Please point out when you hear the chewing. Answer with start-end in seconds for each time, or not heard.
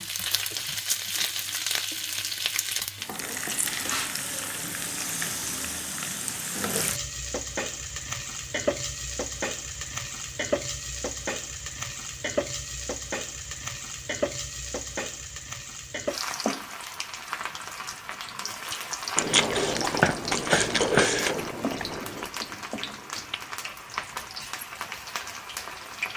19.1-24.0.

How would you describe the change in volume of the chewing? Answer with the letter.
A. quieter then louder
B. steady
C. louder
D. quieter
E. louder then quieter
D.